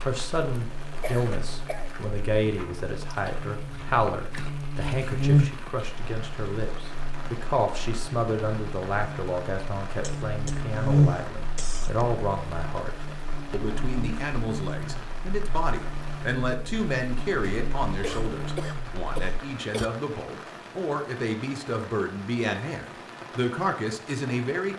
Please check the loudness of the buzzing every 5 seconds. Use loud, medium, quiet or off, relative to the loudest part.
medium, loud, loud, medium, off.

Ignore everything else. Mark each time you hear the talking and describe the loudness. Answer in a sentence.
The talking can be heard from 0.1 to 24.7 s, at a steady volume.